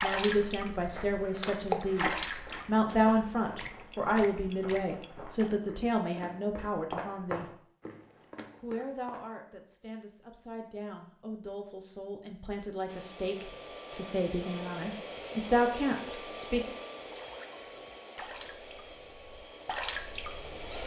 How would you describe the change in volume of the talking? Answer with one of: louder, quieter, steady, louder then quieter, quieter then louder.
quieter then louder.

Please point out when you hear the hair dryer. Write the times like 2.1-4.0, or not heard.
12.8-20.8.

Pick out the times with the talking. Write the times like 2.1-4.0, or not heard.
0.0-7.5, 8.6-16.7.